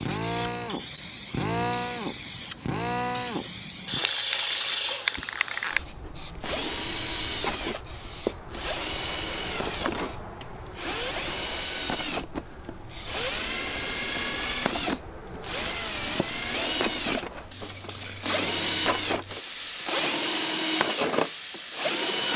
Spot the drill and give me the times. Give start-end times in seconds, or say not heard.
0.0-22.3.